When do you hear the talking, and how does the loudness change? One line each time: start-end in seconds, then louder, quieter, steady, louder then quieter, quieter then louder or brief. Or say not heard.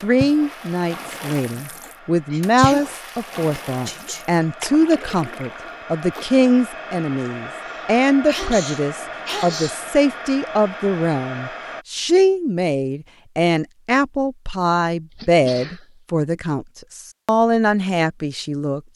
0.0-18.8 steady.